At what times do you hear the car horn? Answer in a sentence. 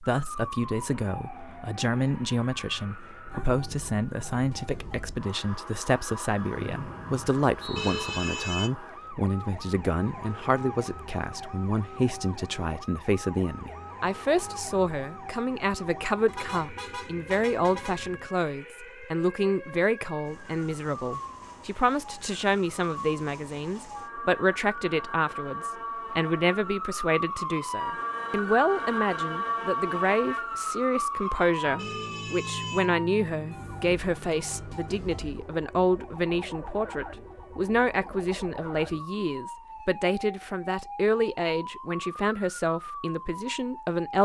The car horn can be heard from 7.8 to 8.7 s, from 16.2 to 18.3 s and from 31.8 to 32.9 s.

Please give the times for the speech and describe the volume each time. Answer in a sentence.
You can hear the speech from 0.0 to 44.2 s, at a steady volume.